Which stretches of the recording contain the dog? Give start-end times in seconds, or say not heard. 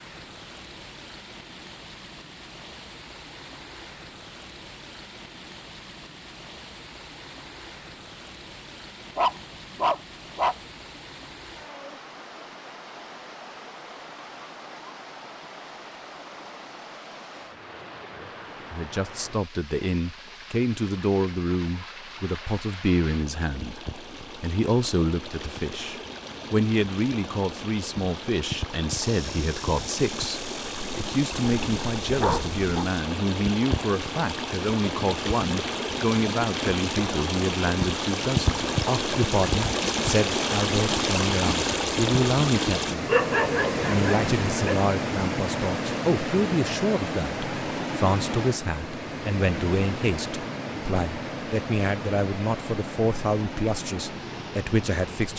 9.2-10.6, 31.3-32.9, 43.0-44.8.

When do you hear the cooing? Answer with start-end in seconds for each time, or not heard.
not heard.